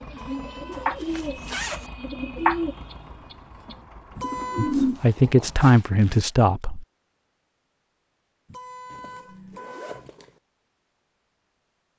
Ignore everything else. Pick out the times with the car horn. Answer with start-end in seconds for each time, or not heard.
0.1-1.0, 4.2-4.8, 8.4-10.1.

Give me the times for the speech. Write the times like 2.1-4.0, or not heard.
4.5-6.8.